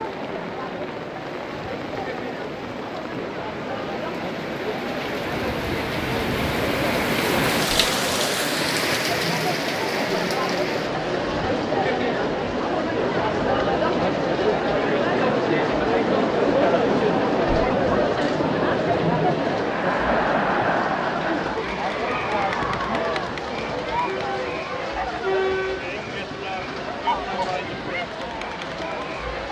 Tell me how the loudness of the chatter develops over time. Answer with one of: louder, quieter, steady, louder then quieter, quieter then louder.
louder then quieter.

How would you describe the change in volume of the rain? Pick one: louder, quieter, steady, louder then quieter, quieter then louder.
louder then quieter.